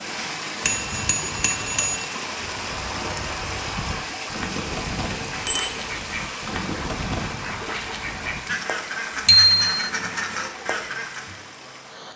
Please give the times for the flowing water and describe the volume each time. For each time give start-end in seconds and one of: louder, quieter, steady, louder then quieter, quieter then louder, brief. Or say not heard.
0.0-12.1 quieter.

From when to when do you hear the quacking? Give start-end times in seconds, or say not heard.
2.4-11.4.